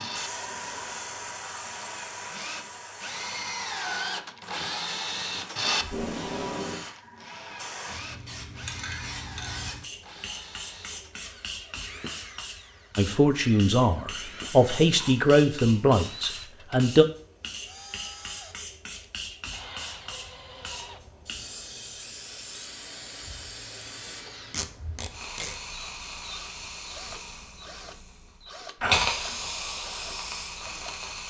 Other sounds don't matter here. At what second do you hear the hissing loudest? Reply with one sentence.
The loudest moment of the hissing is at 29 seconds.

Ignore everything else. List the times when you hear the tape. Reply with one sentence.
You can hear the tape from 5.8 to 6.8 s and from 24.5 to 25.6 s.